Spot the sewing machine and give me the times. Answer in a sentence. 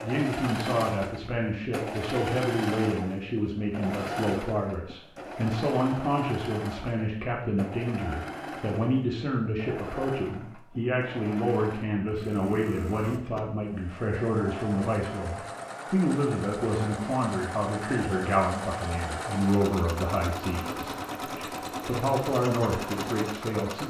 You can hear the sewing machine from 0.0 to 23.8 s.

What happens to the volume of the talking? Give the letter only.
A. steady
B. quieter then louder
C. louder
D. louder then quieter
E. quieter
A.